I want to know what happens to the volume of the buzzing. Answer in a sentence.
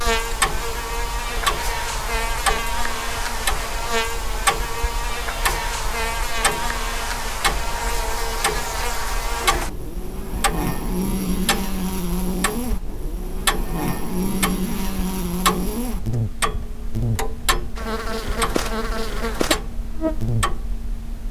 The volume of the buzzing stays about the same.